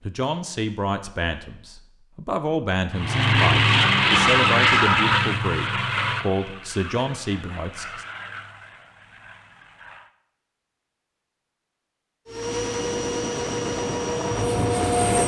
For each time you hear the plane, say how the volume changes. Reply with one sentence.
You can hear the plane from 2.9 to 10.1 s, getting quieter; and briefly from 12.2 to 15.2 s.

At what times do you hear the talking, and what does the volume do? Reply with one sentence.
You can hear the talking from 0.0 to 8.1 s, at a steady volume.